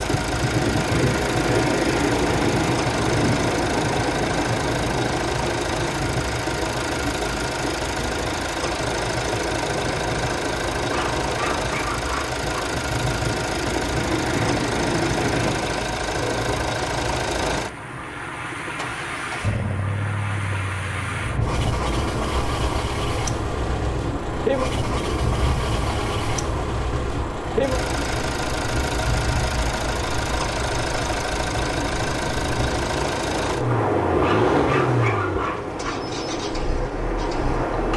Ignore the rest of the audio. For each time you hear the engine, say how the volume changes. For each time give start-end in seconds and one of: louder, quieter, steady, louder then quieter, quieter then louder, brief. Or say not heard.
0.0-37.9 steady.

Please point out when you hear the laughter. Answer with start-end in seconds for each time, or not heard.
not heard.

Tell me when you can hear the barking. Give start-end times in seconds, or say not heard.
10.9-12.6, 34.2-35.9.